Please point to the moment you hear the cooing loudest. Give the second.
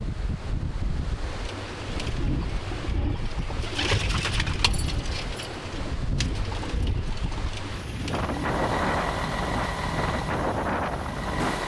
4 s.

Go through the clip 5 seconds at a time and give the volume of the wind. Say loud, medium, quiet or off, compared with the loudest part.
medium, loud, loud.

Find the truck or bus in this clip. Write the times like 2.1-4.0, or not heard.
8.2-11.6.